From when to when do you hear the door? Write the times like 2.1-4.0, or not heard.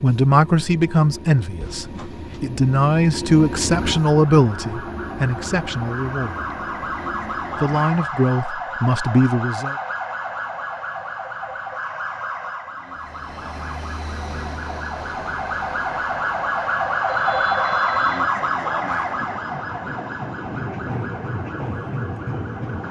1.6-2.4.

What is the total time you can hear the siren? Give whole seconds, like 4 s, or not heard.
19 s.